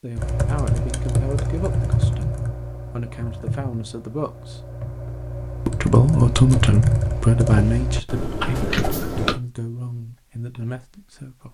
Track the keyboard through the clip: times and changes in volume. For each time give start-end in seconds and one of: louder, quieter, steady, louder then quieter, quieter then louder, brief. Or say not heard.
0.1-9.4 quieter then louder.